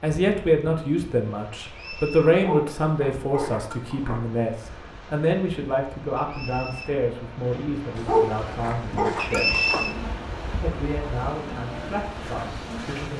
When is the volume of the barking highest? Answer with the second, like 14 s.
8 s.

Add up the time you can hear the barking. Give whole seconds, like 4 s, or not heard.
4 s.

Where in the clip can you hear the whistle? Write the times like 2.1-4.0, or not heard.
1.6-2.3, 6.2-6.9, 9.2-9.9.